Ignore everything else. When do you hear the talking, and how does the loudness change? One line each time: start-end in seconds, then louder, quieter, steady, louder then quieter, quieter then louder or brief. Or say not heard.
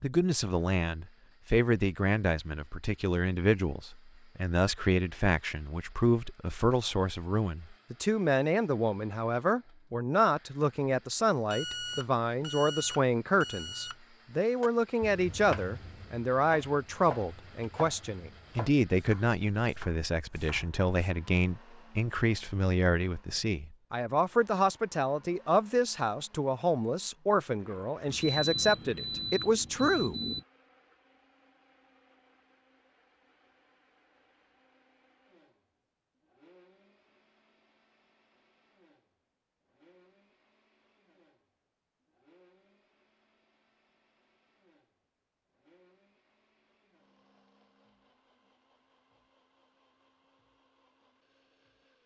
0.0-30.1 steady.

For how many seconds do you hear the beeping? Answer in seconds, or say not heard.
5 s.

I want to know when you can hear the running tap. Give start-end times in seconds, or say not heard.
not heard.